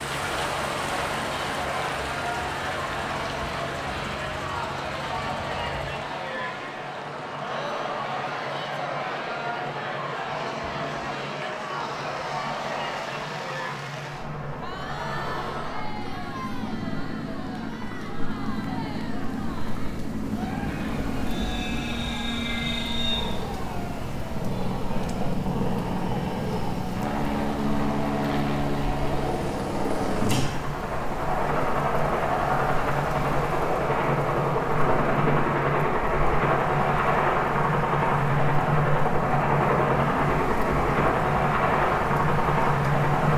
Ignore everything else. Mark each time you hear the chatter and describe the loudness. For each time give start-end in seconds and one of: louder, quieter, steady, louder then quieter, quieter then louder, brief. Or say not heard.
0.2-25.4 quieter.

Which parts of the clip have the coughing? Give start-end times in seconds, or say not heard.
not heard.